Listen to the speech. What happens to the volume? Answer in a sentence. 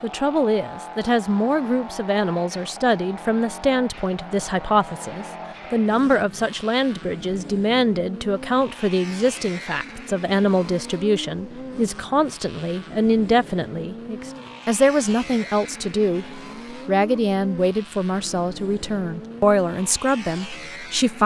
The loudness of the speech stays about the same.